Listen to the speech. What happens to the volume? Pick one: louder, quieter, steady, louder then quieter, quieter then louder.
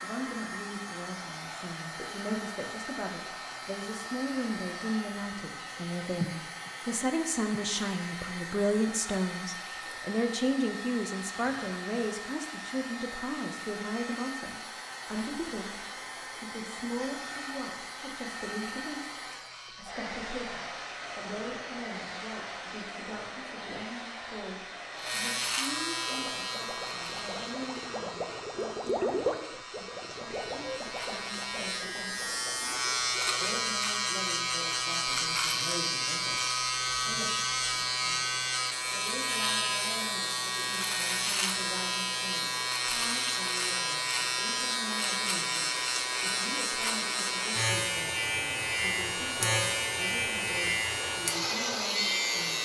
quieter.